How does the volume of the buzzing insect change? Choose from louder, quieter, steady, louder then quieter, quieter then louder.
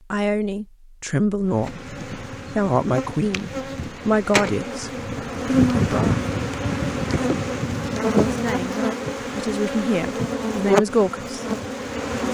louder.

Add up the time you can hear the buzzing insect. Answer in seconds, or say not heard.
11 s.